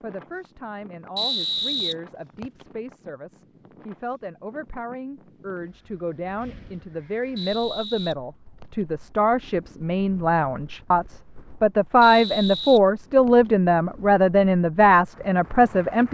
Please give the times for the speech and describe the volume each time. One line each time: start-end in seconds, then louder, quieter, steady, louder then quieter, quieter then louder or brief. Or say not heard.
0.0-16.0 louder.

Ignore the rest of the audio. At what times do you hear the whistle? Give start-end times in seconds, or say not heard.
1.1-2.6, 7.3-8.8, 12.0-13.5.